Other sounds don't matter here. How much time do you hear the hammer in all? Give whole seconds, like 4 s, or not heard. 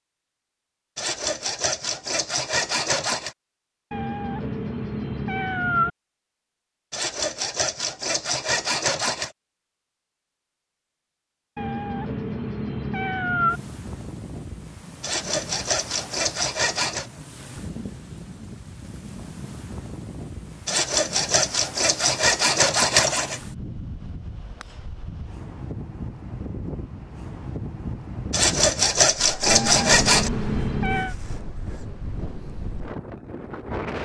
not heard.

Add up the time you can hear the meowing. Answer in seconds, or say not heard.
6 s.